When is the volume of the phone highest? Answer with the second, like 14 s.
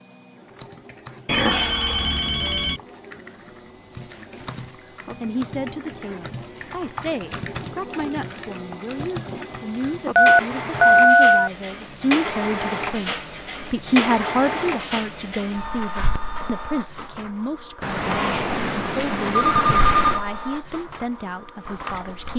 11 s.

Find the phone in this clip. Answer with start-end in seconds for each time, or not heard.
1.2-2.8, 10.2-11.5, 17.8-20.2.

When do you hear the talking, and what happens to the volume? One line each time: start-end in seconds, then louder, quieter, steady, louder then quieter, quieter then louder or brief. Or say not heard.
5.2-22.3 louder then quieter.